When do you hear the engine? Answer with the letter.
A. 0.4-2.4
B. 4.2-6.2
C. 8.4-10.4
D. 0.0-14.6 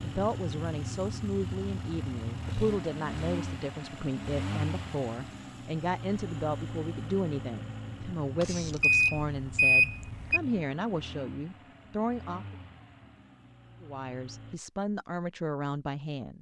D.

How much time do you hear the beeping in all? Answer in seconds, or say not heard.
2 s.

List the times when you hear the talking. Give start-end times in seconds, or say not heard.
0.0-12.6, 13.8-16.3.